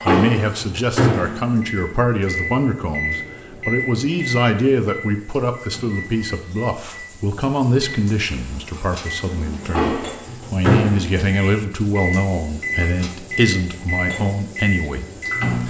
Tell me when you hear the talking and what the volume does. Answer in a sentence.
The talking can be heard from 0.0 to 15.6 s, at a steady volume.